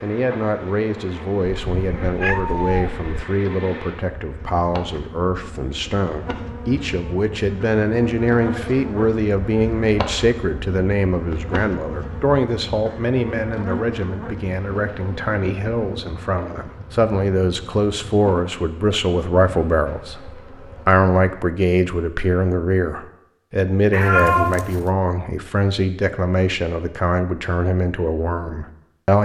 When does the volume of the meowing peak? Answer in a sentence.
The volume of the meowing peaks at 24 seconds.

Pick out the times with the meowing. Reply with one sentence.
The meowing can be heard from 1.4 to 3.2 s and from 23.9 to 24.9 s.